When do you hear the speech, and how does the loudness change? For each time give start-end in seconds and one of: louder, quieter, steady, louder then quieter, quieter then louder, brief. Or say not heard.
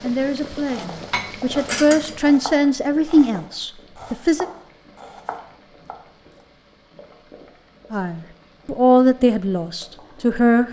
0.0-4.5 louder then quieter
7.9-10.6 brief.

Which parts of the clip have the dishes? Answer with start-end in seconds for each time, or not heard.
0.9-2.2.